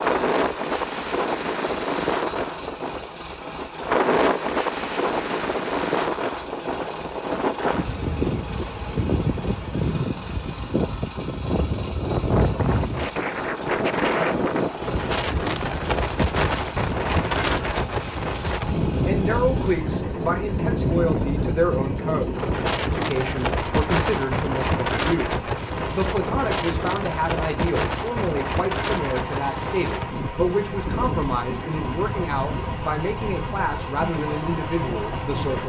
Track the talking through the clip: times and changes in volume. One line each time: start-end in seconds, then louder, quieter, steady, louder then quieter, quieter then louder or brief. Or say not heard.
19.0-35.6 steady.